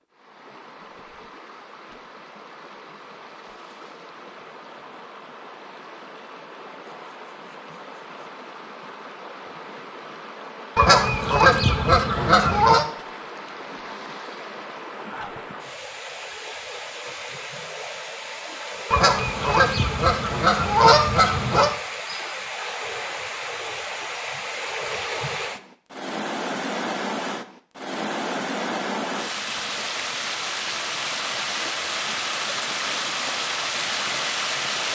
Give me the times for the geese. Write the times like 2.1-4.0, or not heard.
10.8-12.8, 18.9-21.8.